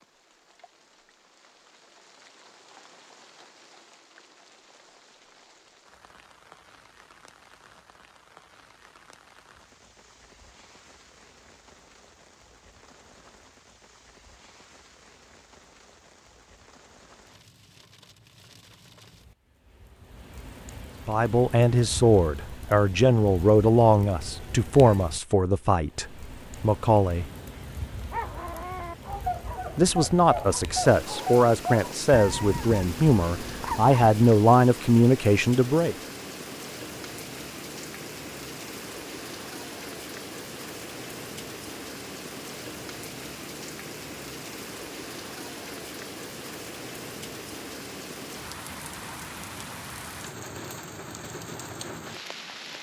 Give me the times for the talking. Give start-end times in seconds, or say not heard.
21.1-27.2, 29.8-36.0.